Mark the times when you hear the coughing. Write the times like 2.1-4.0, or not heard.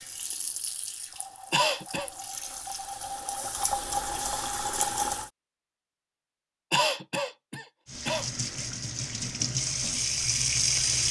1.5-2.1, 6.7-8.2.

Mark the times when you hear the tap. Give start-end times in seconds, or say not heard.
0.0-5.3, 7.8-11.0.